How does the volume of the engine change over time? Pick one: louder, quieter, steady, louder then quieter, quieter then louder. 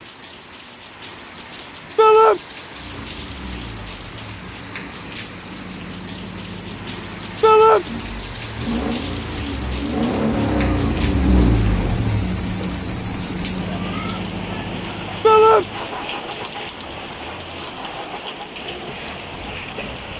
louder then quieter.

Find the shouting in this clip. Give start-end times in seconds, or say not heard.
1.9-2.4, 7.4-7.8, 15.2-15.7.